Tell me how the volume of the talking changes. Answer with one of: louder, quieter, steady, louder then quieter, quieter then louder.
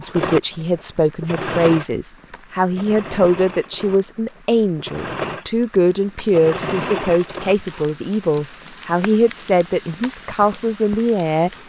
steady.